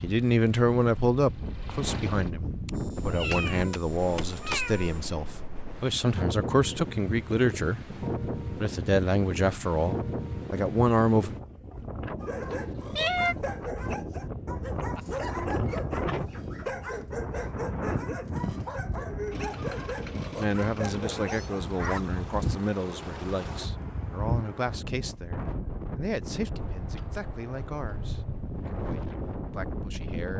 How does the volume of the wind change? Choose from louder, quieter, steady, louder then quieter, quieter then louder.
steady.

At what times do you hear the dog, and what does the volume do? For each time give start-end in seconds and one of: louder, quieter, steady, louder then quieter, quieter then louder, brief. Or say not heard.
12.2-22.2 steady.